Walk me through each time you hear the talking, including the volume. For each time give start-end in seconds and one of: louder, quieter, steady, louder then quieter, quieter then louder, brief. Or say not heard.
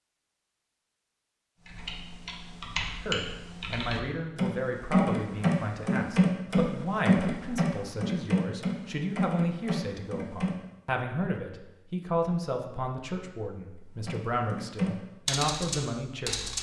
3.0-16.5 steady.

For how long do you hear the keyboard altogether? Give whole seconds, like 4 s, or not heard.
11 s.